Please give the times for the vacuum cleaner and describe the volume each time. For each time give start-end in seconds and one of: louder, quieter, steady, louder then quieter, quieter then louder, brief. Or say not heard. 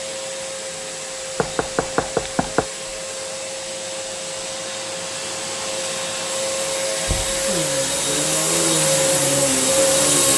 0.0-10.3 louder.